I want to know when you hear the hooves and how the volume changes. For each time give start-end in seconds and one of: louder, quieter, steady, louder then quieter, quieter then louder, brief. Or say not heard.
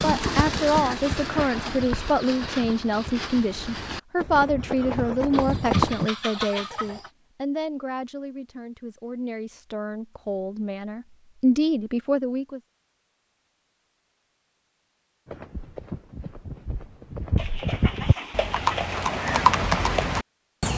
0.0-6.1 quieter then louder
15.2-20.7 louder.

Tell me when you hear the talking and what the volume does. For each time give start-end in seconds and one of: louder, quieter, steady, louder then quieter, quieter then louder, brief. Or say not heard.
0.0-12.6 quieter then louder.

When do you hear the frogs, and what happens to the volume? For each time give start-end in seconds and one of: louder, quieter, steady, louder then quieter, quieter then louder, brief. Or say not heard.
not heard.